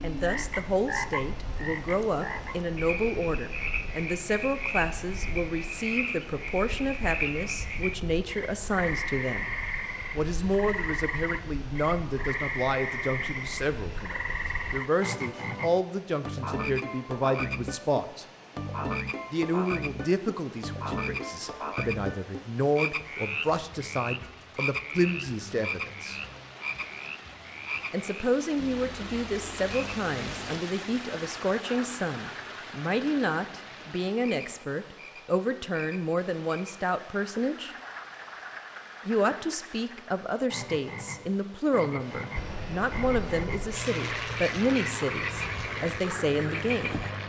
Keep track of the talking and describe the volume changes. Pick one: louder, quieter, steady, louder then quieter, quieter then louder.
steady.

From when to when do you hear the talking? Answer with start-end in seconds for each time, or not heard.
0.0-9.6, 10.2-18.2, 19.3-26.2, 27.9-37.8, 39.0-47.0.